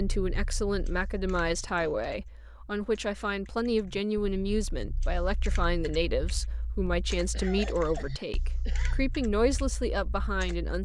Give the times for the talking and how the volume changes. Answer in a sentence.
You can hear the talking from 0.0 to 10.8 s, at a steady volume.